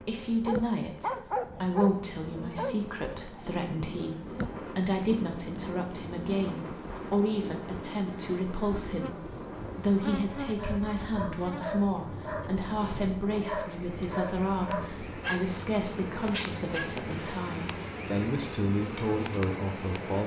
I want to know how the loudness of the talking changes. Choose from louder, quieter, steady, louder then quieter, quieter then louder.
steady.